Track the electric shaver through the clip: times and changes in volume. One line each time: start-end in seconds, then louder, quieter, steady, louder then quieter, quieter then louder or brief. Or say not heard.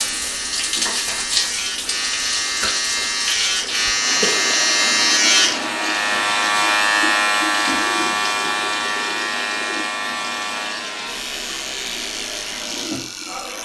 0.0-13.6 louder then quieter.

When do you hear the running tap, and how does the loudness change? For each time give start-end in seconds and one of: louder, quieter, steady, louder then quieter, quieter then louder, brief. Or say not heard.
0.0-13.6 quieter.